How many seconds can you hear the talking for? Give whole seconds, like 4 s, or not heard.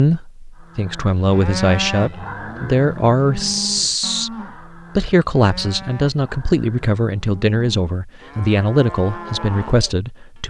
10 s.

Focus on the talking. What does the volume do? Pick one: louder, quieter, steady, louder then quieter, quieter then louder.
steady.